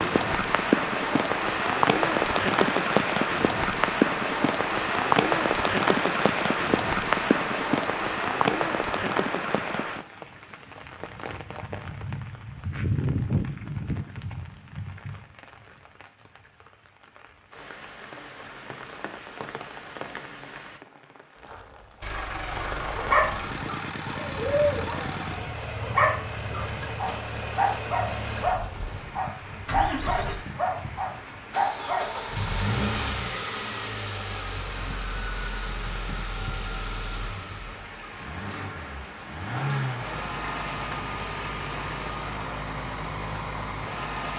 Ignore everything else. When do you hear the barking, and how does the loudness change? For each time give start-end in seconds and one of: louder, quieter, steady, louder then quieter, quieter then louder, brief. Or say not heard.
22.1-32.1 steady.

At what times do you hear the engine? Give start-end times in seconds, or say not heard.
22.0-44.3.